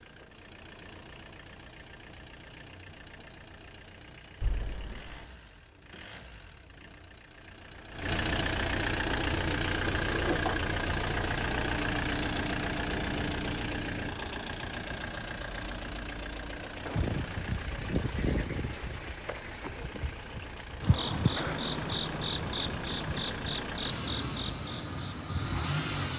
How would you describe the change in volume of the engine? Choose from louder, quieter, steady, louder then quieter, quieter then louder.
louder then quieter.